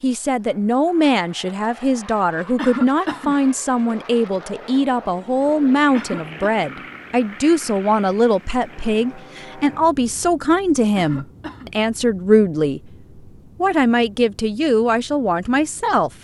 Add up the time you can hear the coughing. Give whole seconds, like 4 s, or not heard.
2 s.